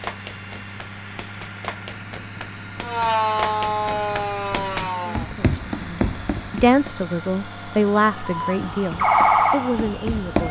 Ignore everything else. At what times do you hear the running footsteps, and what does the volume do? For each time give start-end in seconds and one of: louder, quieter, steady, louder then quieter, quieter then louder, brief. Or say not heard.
0.0-6.9 louder
8.7-10.4 brief.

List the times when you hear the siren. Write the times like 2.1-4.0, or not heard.
2.8-5.3, 8.2-10.4.